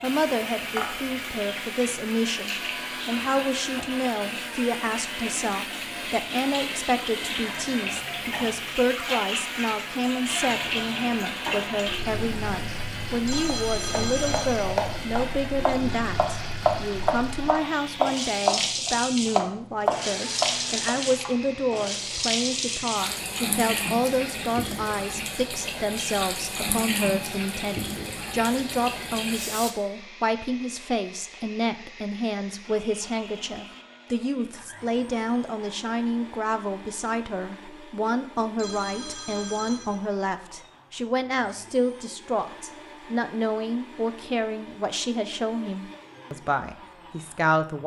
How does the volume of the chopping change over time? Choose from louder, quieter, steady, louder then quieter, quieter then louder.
louder.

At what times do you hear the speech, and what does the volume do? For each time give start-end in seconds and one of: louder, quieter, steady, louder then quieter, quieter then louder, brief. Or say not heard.
0.0-47.8 steady.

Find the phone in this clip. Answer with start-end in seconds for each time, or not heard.
13.2-14.7, 38.5-40.0.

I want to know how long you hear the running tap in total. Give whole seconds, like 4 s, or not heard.
30 s.